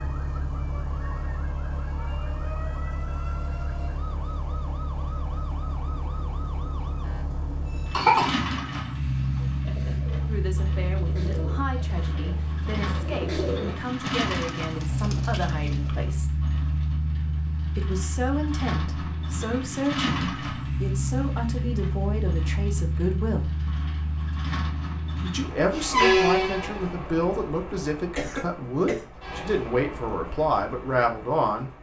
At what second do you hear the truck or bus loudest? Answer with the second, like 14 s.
26 s.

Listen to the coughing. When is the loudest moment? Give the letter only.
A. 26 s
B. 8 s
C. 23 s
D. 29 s
B.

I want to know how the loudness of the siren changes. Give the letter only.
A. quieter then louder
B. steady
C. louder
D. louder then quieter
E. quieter
B.